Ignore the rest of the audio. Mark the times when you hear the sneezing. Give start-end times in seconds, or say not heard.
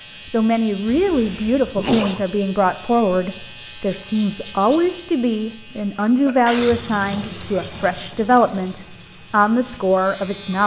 0.8-2.2, 5.7-6.8.